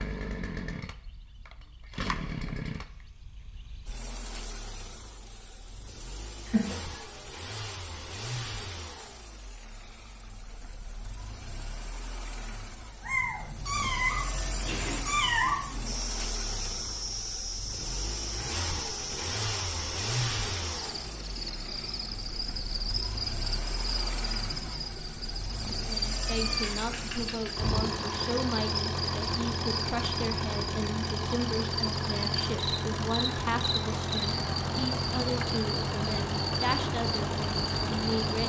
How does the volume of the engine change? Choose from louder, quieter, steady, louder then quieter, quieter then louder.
louder.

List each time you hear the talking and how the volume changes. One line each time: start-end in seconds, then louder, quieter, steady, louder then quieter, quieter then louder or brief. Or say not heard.
25.7-38.4 steady.